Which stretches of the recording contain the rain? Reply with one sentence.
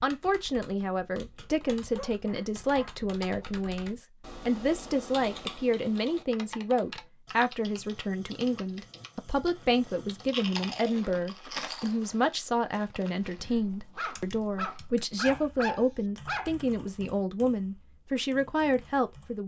The rain can't be heard in this clip.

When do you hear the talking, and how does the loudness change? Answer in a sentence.
The talking can be heard from 0.0 to 19.4 s, at a steady volume.